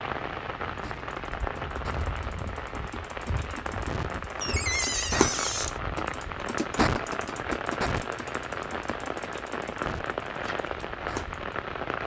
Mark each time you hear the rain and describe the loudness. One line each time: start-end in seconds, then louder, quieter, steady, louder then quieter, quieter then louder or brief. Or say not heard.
0.0-12.0 steady.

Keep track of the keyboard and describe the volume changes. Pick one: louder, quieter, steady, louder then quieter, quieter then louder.
louder then quieter.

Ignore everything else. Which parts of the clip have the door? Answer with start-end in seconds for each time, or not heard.
4.4-5.8.